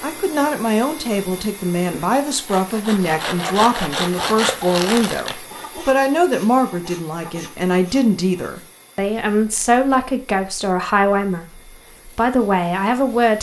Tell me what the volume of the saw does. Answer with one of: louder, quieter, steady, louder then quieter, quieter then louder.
quieter.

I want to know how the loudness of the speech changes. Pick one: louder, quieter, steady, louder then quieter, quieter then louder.
steady.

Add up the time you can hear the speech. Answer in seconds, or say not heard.
13 s.